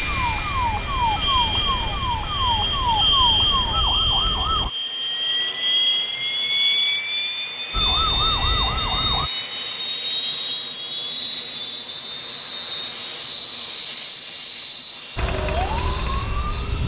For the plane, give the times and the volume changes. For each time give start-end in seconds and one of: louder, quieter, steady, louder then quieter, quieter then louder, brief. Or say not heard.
0.0-16.8 steady.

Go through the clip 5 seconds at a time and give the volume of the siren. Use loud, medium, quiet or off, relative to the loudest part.
loud, loud, off, loud.